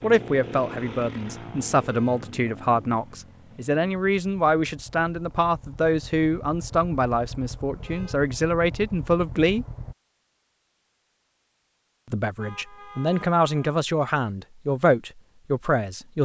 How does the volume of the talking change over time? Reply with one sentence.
The loudness of the talking stays about the same.